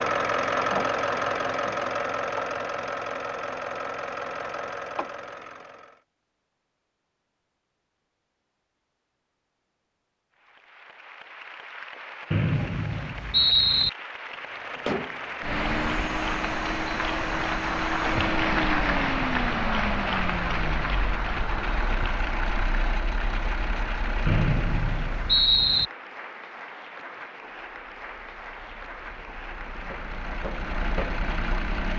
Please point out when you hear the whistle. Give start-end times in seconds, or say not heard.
12.3-13.9, 24.2-25.9.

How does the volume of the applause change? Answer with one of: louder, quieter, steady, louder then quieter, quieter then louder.
louder then quieter.